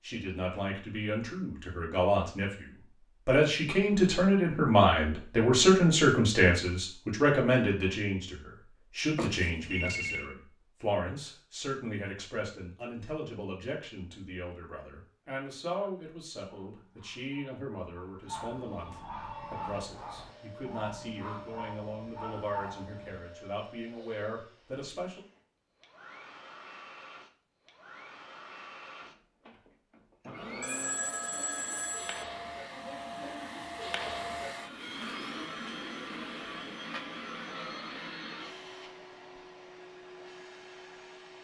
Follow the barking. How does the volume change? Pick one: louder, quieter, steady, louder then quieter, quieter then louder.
louder.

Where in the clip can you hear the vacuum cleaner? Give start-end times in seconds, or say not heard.
19.1-41.3.